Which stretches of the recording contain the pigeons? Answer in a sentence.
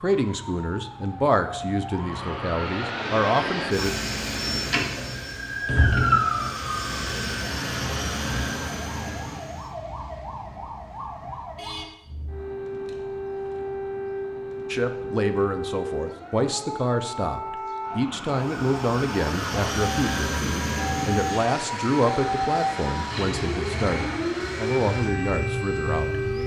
The pigeons can't be heard in this clip.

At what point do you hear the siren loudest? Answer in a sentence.
The loudest moment of the siren is at 6 seconds.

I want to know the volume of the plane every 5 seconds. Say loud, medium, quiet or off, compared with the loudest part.
loud, loud, off, loud, loud, medium.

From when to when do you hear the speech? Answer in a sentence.
You can hear the speech from 0.0 to 4.0 s and from 14.7 to 26.1 s.